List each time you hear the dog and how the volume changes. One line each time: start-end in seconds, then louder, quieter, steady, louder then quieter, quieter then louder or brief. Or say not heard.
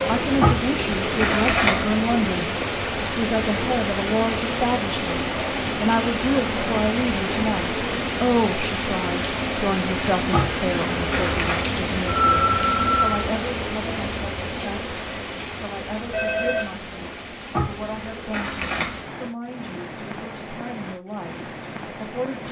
not heard.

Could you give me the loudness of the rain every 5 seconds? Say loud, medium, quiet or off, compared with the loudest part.
loud, loud, loud, medium, medium.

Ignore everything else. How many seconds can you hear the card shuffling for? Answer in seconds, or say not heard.
4 s.